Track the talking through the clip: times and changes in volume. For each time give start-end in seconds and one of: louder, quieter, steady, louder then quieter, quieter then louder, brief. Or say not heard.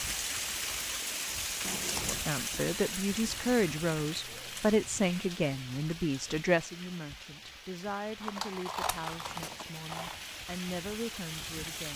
2.0-11.9 quieter.